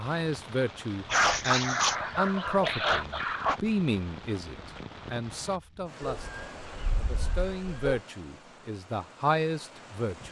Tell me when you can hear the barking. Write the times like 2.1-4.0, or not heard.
1.1-3.6, 6.0-8.0.